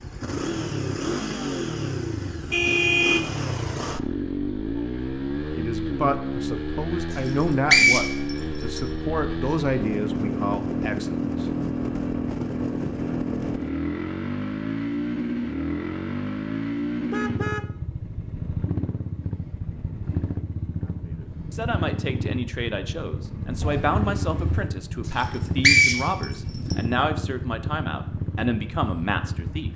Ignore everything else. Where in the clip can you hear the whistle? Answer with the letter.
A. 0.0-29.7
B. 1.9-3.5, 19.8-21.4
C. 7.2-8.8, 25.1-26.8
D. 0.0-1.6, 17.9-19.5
C.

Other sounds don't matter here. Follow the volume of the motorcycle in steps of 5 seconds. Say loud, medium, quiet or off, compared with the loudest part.
loud, loud, loud, loud, medium, medium.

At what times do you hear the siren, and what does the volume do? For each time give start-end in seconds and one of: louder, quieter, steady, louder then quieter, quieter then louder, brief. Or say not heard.
not heard.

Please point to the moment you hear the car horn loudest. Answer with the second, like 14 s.
3 s.